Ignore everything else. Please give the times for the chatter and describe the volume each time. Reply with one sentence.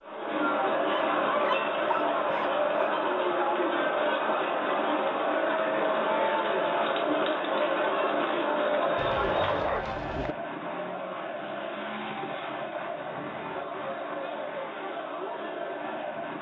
The chatter can be heard from 0.0 to 16.3 s, getting quieter.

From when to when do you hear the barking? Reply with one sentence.
The barking can be heard from 0.9 to 2.9 s and from 8.9 to 10.3 s.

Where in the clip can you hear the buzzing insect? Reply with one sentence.
You can't hear the buzzing insect here.